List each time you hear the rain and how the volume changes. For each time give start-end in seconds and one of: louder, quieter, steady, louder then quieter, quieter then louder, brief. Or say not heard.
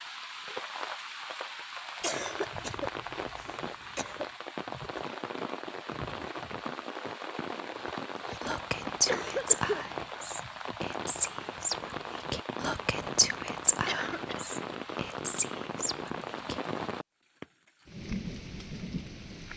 0.0-19.5 steady.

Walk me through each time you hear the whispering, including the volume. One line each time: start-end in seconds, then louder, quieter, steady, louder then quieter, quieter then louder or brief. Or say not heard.
8.4-16.6 quieter.